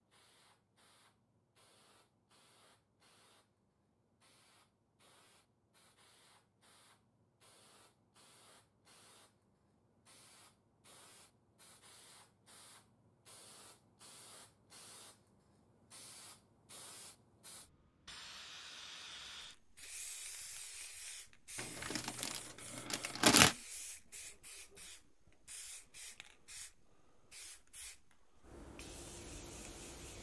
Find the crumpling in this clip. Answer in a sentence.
You can hear the crumpling from 21.6 to 23.6 s.